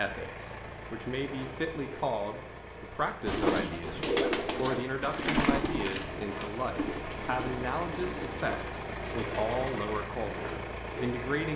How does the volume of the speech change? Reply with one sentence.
The volume of the speech stays about the same.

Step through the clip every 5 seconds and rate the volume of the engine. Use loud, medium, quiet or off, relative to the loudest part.
medium, loud, loud.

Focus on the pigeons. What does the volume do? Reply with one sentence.
The volume of the pigeons goes down.